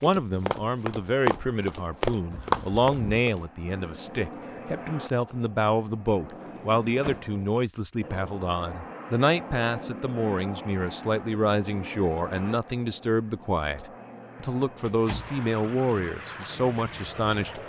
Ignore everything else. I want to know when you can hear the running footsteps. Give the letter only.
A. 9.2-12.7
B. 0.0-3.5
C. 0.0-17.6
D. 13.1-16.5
B.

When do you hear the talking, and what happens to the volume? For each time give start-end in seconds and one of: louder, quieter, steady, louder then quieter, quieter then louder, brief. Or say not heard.
0.0-17.6 steady.